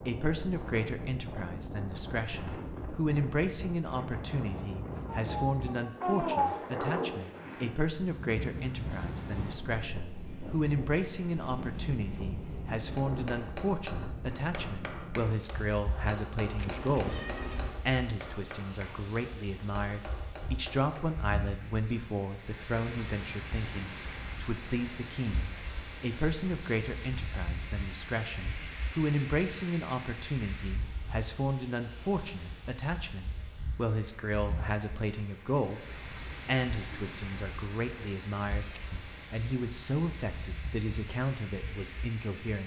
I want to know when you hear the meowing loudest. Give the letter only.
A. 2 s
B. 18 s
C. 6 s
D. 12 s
C.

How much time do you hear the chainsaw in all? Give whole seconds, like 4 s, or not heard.
not heard.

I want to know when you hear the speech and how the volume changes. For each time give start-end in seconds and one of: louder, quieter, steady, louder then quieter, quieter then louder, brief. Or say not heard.
0.1-42.6 steady.